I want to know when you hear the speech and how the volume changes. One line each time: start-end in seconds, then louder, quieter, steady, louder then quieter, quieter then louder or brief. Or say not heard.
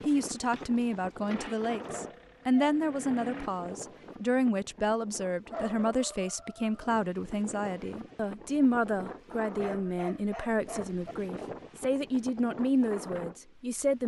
0.1-14.0 steady.